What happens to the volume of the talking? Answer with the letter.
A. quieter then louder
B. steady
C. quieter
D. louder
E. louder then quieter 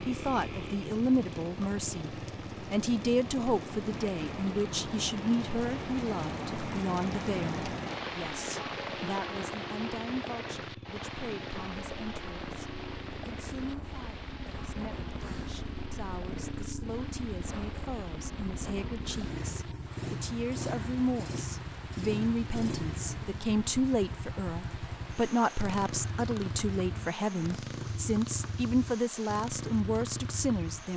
A.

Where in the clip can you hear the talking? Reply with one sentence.
The talking can be heard from 0.0 to 30.9 s.